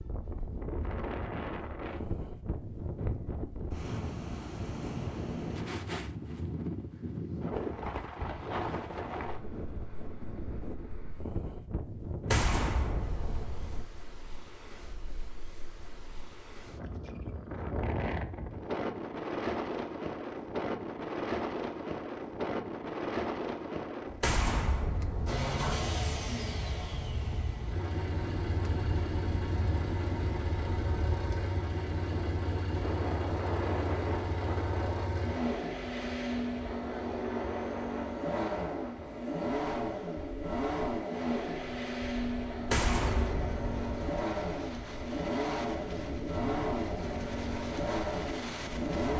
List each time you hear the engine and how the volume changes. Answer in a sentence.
The engine can be heard from 25.2 to 49.1 s, at a steady volume.